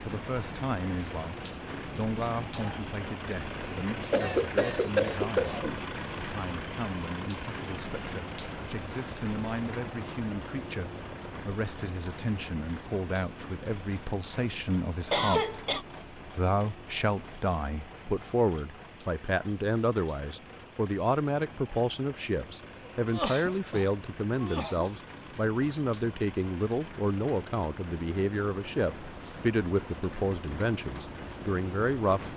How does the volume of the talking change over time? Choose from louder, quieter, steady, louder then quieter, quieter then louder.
louder.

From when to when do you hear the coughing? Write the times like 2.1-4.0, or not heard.
4.1-5.8, 15.1-15.8, 22.9-24.9.